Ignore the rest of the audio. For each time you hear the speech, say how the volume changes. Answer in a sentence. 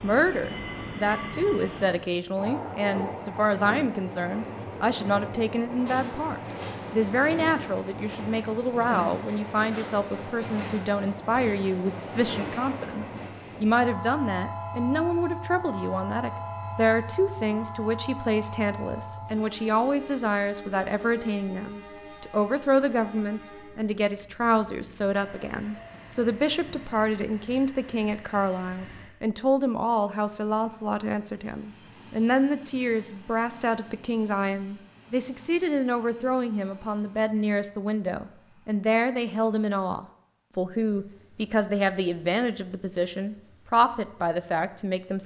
You can hear the speech from 0.0 to 45.2 s, at a steady volume.